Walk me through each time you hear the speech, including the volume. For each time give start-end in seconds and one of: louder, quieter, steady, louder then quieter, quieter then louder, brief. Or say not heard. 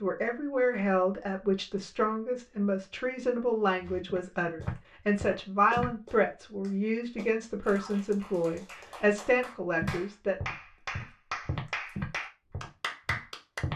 0.0-10.3 steady.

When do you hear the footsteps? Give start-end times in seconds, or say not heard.
3.8-6.0, 9.8-13.7.